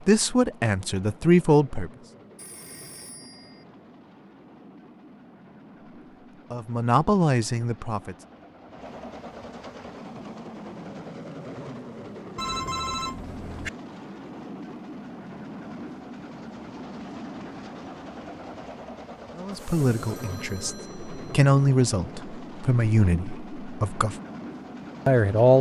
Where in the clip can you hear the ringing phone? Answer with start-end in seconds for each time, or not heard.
2.4-3.6, 12.3-13.7, 19.5-21.3.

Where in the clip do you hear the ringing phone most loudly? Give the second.
13 s.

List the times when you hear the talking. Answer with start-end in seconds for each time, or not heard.
0.1-1.9, 6.5-8.2, 19.4-24.1, 25.1-25.5.